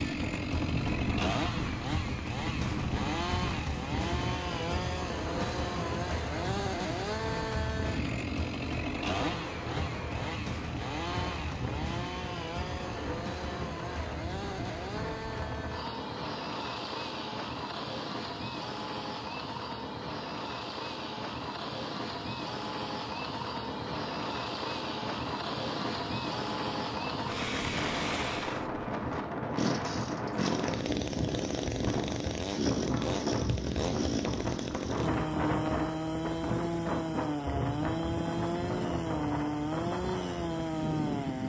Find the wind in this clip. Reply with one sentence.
You can hear the wind from 0.0 to 41.4 s.